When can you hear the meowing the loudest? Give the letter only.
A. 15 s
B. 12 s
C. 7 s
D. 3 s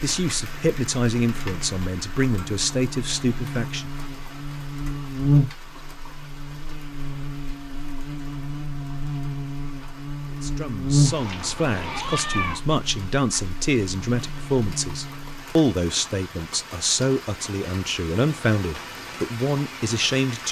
B.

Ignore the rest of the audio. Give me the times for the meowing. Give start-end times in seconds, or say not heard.
11.1-12.6.